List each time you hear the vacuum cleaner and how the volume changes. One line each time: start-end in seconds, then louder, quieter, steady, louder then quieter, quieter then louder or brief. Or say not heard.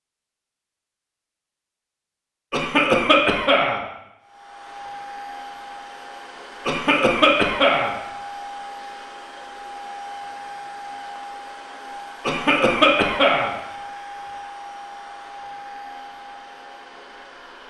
4.2-17.6 steady.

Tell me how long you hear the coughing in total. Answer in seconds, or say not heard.
4 s.